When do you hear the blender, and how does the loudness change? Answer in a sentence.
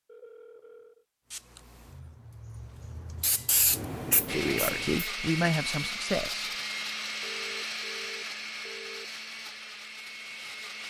You can hear the blender from 4.2 to 10.8 s, getting quieter.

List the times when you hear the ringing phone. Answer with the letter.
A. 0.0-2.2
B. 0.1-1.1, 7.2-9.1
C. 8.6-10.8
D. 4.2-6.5
B.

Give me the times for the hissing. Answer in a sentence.
The hissing can be heard from 1.3 to 5.0 s.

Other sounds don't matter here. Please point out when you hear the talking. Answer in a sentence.
You can hear the talking from 4.2 to 6.5 s.